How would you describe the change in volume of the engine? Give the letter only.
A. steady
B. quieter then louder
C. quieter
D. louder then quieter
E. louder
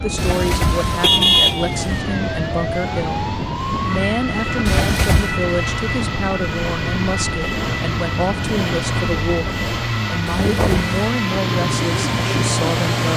E.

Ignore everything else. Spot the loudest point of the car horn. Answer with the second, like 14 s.
1 s.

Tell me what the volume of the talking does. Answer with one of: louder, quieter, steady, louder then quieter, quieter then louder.
steady.